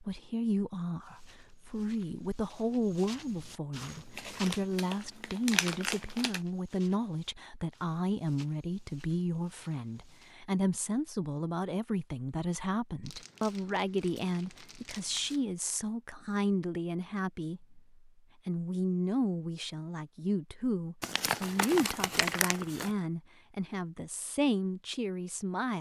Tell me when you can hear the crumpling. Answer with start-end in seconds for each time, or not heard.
4.2-6.4, 13.1-15.4, 21.0-22.9.